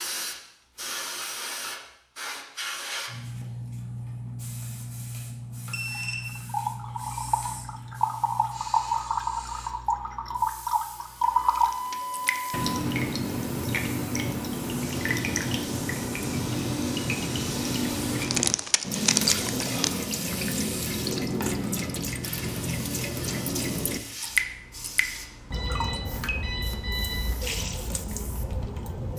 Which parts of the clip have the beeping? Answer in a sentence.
You can hear the beeping from 5.7 to 7.7 s, from 11.2 to 12.7 s and from 25.5 to 27.2 s.